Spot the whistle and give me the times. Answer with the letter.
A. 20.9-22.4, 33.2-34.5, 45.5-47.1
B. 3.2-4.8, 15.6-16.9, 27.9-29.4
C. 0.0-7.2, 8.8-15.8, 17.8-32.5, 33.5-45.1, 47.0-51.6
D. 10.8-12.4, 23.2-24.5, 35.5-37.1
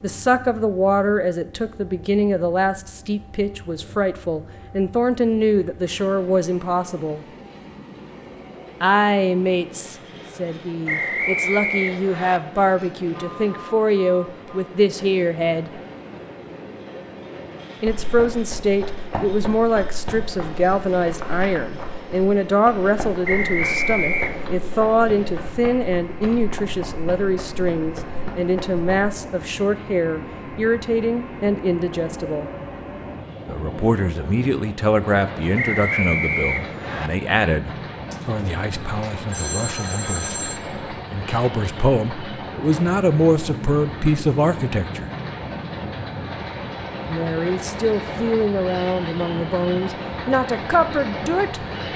D.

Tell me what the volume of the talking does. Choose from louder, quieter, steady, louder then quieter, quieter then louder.
steady.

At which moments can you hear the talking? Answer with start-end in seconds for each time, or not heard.
0.0-7.2, 8.8-15.8, 17.8-32.5, 33.5-45.1, 47.0-51.6.